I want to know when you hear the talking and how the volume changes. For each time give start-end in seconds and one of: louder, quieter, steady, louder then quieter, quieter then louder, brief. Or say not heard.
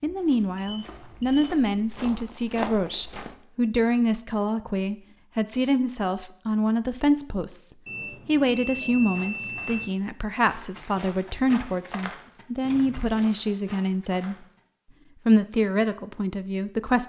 0.0-14.4 steady
15.2-17.0 brief.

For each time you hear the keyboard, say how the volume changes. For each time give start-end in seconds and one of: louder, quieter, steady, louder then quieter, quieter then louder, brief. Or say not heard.
not heard.